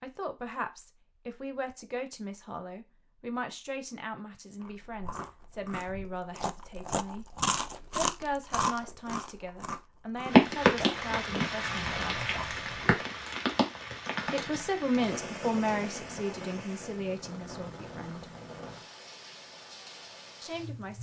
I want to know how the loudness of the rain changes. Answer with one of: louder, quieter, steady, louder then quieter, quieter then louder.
quieter.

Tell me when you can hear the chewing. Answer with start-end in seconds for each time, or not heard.
4.6-13.1.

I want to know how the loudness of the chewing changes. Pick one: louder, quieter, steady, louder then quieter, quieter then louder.
louder then quieter.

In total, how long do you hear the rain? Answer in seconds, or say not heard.
11 s.